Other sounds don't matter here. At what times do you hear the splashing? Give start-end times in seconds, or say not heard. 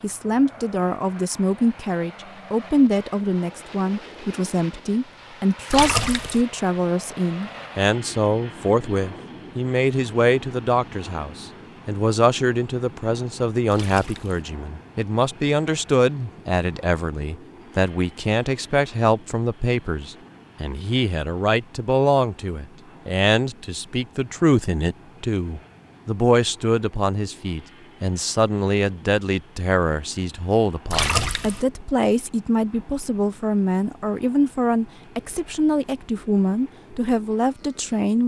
5.7-6.5, 13.7-14.4, 30.9-31.6.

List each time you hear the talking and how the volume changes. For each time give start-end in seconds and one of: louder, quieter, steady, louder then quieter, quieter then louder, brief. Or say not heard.
0.0-38.2 steady.